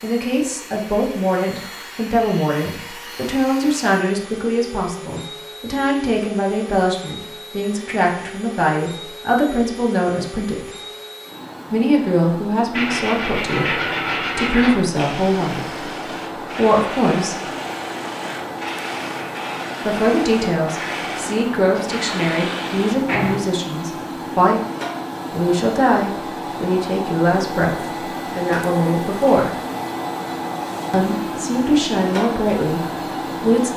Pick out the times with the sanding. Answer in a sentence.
You can hear the sanding from 12.7 to 23.4 s.